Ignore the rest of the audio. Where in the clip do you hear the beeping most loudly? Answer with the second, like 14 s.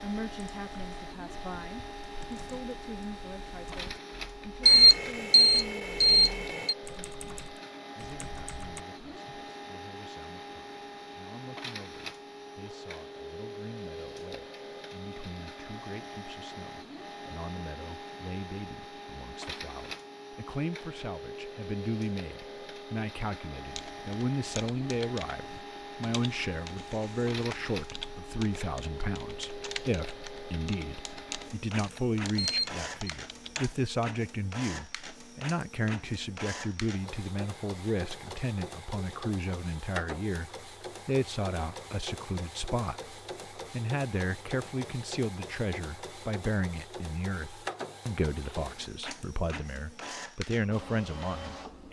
5 s.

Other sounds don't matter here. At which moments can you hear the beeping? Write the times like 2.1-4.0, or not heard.
4.7-6.8, 32.4-32.9.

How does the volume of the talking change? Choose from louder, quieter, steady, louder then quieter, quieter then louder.
louder.